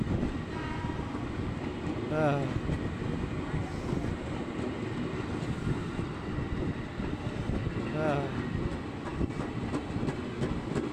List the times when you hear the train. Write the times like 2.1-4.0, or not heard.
0.0-10.8.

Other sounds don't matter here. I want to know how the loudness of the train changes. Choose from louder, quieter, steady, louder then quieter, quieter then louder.
steady.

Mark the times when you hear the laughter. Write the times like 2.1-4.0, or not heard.
2.1-2.6, 7.9-8.5.